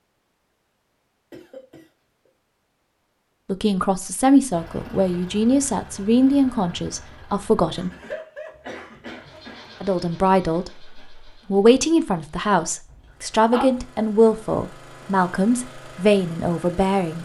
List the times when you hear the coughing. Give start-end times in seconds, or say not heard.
1.3-2.3, 7.8-9.8, 12.8-13.7.